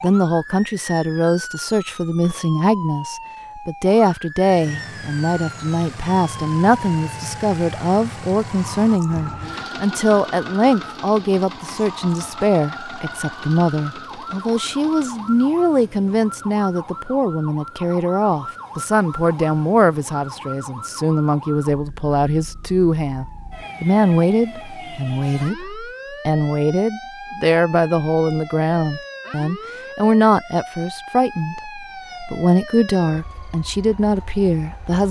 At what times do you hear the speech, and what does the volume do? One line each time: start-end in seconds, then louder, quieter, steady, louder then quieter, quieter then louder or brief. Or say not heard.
0.0-35.0 steady.